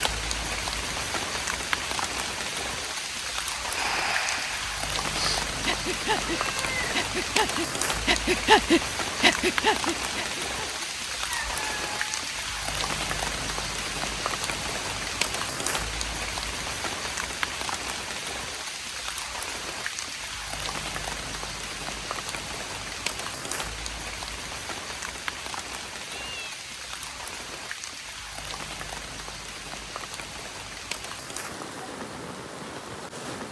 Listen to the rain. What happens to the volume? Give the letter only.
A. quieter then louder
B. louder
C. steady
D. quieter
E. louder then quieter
D.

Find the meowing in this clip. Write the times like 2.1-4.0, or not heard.
6.2-7.0, 11.2-12.3, 26.1-27.5.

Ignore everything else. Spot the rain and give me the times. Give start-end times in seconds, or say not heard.
0.0-33.4.